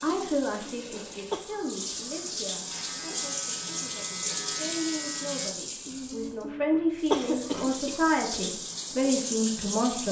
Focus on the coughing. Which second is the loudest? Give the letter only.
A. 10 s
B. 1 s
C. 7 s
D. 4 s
C.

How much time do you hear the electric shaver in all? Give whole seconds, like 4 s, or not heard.
3 s.